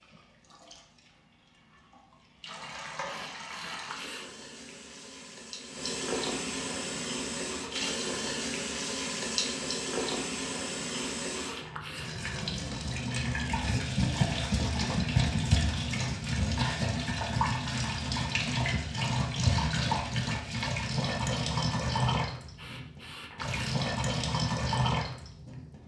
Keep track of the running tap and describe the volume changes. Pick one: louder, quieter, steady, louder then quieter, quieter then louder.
louder.